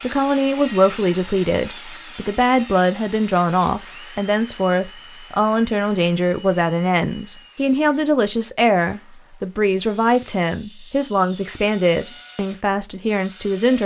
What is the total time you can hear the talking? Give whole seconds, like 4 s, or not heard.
14 s.